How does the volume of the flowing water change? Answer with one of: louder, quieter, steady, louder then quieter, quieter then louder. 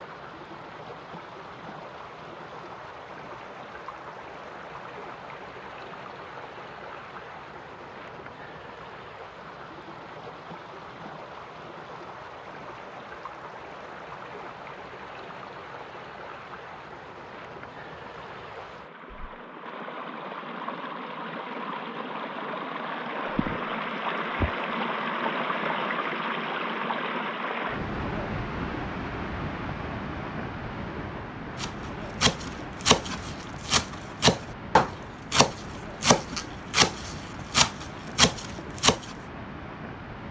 louder then quieter.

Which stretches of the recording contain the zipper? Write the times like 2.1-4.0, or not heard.
not heard.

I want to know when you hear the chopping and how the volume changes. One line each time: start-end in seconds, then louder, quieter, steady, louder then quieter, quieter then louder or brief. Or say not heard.
31.6-39.1 steady.